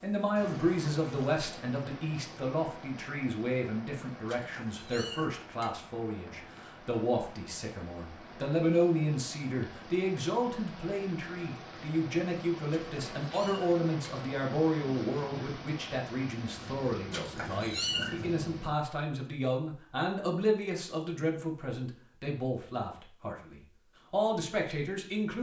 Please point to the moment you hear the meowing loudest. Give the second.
18 s.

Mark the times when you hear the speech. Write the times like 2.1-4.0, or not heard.
0.0-25.3.